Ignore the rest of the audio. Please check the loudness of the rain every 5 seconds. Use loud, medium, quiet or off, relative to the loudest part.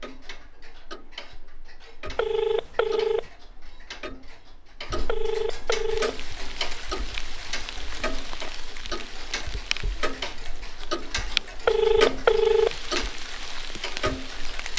off, loud, loud.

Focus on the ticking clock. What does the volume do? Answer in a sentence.
The loudness of the ticking clock goes up.